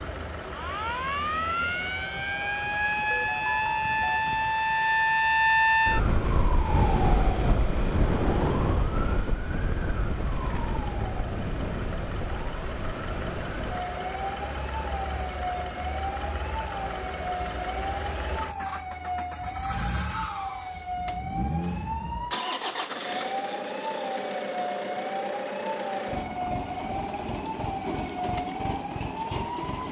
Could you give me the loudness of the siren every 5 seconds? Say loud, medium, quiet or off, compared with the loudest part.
loud, loud, medium, medium, medium, medium.